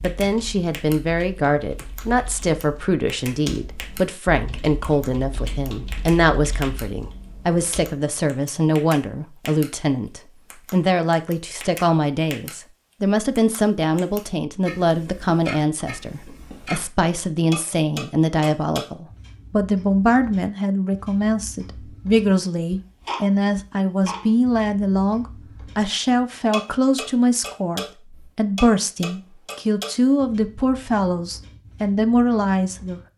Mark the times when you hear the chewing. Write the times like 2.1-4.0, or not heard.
not heard.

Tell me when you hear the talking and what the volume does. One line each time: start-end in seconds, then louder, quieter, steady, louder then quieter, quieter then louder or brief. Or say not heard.
0.0-33.0 steady.